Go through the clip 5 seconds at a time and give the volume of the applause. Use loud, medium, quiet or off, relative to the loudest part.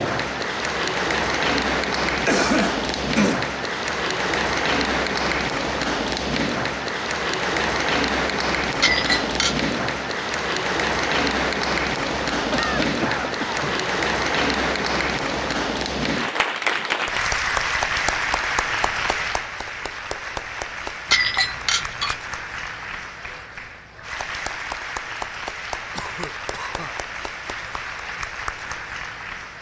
loud, loud, loud, loud, medium, medium.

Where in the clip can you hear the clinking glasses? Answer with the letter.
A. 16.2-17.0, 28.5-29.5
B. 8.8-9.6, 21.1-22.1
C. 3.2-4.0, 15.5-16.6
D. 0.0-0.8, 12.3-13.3
B.